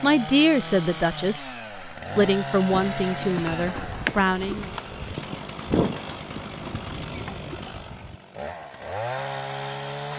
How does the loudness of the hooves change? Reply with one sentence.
The loudness of the hooves goes up, then down.